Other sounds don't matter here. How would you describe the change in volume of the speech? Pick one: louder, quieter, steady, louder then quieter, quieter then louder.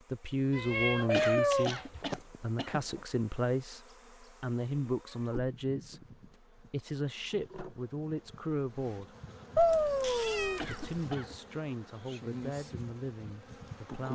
quieter.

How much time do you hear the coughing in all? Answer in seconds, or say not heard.
3 s.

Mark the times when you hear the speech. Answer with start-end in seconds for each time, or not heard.
0.1-9.2, 10.7-14.1.